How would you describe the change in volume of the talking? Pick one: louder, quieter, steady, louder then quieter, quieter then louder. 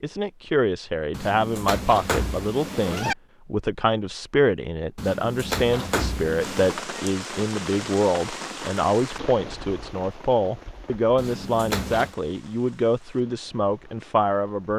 steady.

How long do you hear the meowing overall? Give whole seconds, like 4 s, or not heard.
5 s.